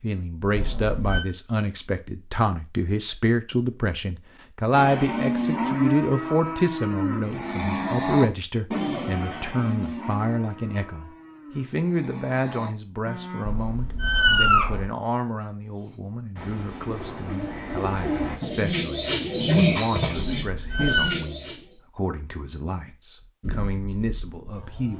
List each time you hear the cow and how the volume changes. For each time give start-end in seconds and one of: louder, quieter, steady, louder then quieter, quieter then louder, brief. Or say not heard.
4.7-13.4 quieter
23.4-24.9 brief.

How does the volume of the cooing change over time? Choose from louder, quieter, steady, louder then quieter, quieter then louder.
louder then quieter.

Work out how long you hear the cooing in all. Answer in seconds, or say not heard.
6 s.